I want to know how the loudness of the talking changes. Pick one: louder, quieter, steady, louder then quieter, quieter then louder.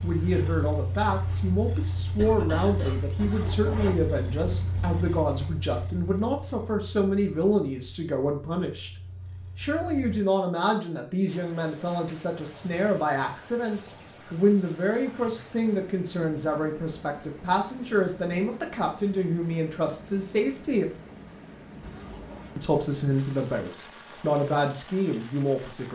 steady.